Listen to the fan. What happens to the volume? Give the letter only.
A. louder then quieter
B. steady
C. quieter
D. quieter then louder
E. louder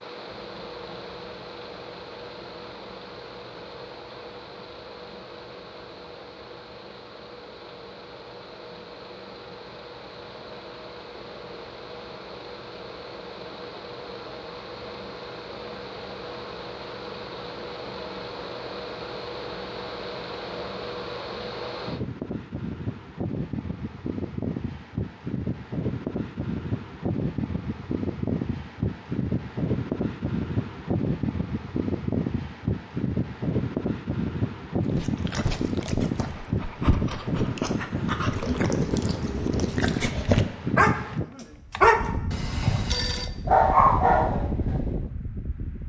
E.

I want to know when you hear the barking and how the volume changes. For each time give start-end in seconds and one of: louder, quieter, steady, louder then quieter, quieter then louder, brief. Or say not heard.
35.0-42.8 louder
43.5-44.9 brief.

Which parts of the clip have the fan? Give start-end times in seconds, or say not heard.
0.0-45.8.